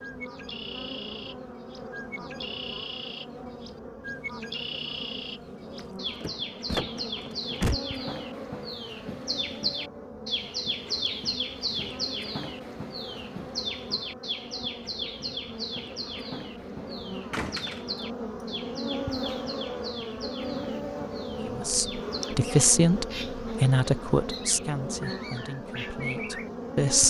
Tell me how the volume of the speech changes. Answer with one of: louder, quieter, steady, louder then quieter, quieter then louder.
quieter.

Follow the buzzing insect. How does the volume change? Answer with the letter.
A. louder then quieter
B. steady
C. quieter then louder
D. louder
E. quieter
D.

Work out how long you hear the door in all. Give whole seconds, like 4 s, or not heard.
3 s.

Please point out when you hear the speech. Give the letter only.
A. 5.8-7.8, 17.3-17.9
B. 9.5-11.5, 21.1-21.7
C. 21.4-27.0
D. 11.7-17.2
C.